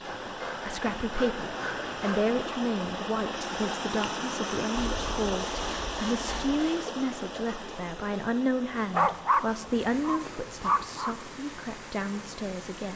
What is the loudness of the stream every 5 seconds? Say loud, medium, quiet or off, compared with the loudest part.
loud, loud, medium.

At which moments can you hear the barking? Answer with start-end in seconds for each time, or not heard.
8.9-11.2.